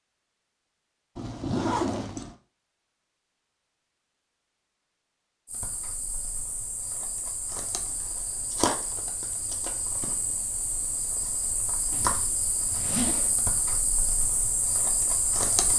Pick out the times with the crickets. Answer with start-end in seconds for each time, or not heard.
5.5-15.7.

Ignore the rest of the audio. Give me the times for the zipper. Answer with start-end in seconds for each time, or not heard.
1.1-2.4, 11.9-13.5.